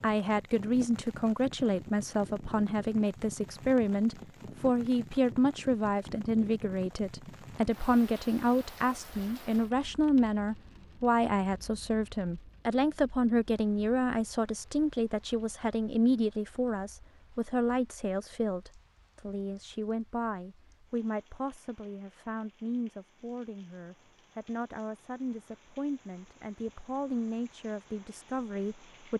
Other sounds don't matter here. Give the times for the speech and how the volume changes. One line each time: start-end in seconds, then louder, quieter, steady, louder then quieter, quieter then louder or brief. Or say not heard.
0.0-29.1 quieter.